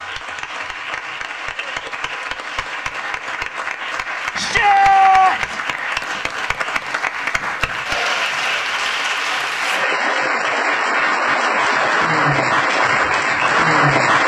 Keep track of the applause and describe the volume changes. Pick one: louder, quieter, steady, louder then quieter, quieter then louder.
louder.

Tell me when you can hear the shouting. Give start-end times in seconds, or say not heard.
4.3-5.6.